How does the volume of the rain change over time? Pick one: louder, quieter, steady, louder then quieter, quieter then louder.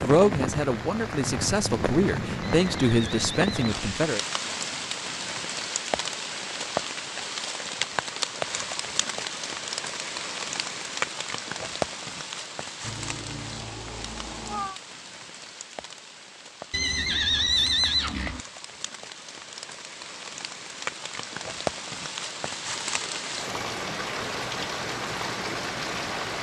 quieter then louder.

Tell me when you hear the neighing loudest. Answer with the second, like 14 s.
18 s.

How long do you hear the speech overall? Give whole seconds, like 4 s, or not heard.
4 s.